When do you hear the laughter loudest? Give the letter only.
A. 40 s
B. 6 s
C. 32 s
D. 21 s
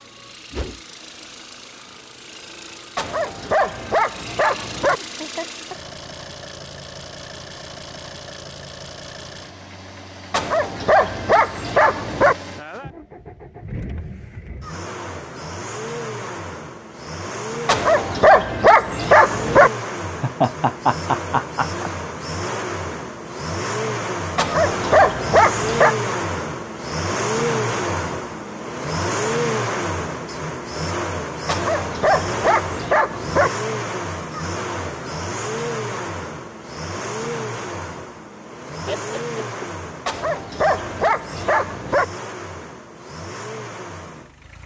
D.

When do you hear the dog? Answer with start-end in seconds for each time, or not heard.
3.0-5.0, 10.3-12.3, 17.6-19.7, 24.4-25.9, 31.4-33.5, 40.0-42.0.